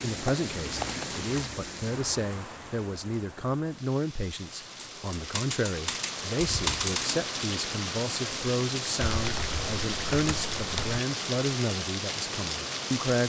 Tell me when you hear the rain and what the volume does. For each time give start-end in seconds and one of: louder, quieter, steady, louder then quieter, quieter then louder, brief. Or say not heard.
0.0-13.2 quieter then louder.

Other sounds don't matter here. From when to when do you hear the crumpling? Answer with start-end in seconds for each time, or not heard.
0.7-1.5.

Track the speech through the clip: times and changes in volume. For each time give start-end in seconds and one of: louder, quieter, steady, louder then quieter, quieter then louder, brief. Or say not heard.
0.0-13.2 steady.